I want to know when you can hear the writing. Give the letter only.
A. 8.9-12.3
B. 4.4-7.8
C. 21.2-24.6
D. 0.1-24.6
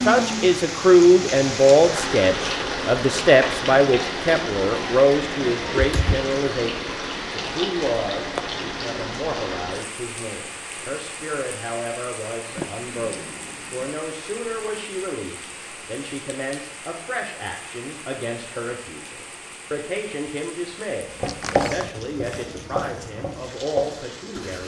C.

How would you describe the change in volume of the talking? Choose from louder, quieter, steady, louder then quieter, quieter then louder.
quieter.